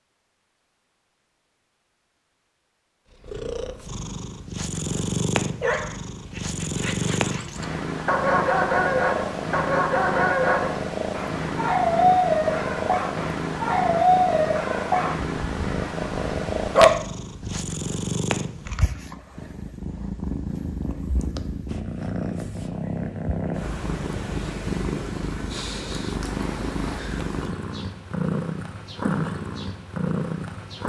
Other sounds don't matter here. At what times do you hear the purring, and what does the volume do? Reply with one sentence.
The purring can be heard from 3.1 to 30.8 s, at a steady volume.